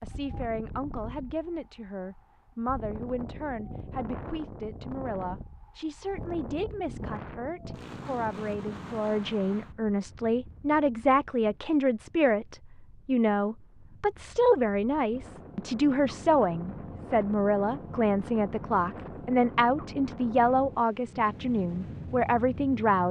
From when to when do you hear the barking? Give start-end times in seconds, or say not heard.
not heard.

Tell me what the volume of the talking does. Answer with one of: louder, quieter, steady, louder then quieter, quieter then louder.
louder.